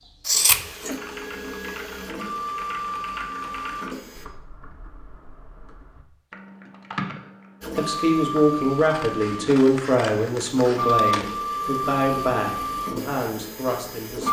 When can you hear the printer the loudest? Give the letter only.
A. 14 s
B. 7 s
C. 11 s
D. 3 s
C.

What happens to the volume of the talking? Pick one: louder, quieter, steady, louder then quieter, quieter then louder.
quieter.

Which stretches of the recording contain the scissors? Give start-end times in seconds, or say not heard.
0.2-0.9, 8.8-11.4.